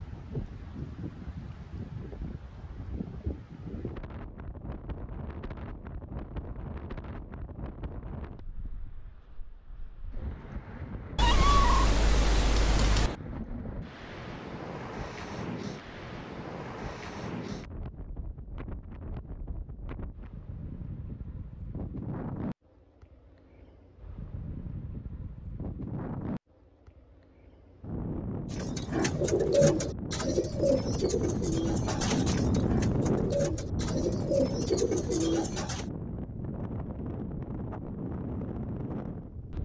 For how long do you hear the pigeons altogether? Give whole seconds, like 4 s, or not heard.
7 s.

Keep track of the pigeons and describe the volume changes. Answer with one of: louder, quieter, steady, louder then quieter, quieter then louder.
quieter then louder.